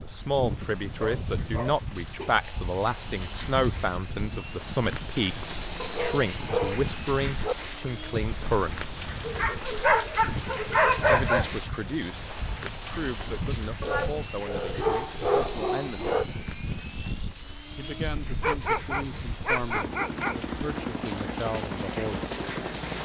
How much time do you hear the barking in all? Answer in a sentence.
The barking can be heard for 10 seconds in total.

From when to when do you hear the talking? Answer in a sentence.
You can hear the talking from 0.0 to 8.9 s, from 11.1 to 16.1 s and from 17.8 to 22.3 s.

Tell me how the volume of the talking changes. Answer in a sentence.
The loudness of the talking goes down.